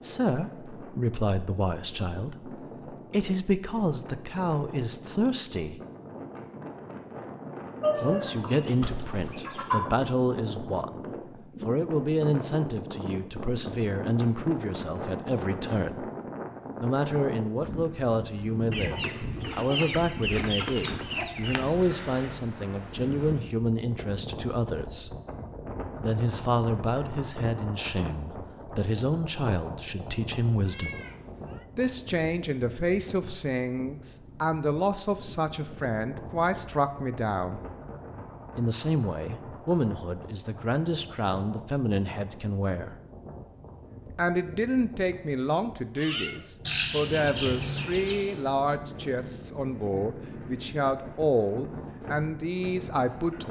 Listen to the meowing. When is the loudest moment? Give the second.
46 s.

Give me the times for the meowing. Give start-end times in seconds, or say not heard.
8.8-9.7, 30.6-31.6, 46.0-46.5.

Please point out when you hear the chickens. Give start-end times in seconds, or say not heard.
7.8-9.8, 18.7-21.6, 46.6-48.3.